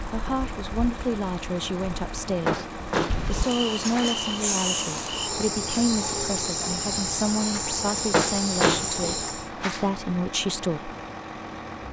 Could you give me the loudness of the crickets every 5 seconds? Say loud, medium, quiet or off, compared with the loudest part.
loud, loud, off.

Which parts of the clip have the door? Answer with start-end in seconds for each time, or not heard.
2.5-4.2, 8.1-9.9.